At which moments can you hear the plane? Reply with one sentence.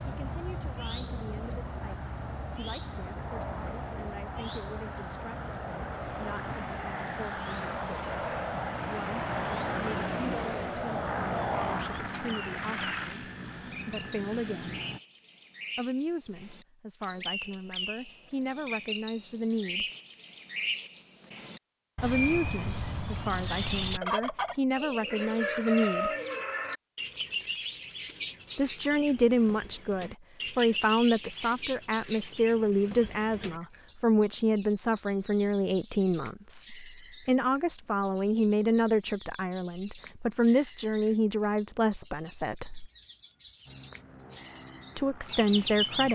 The plane can be heard from 0.0 to 15.0 s and from 43.6 to 46.1 s.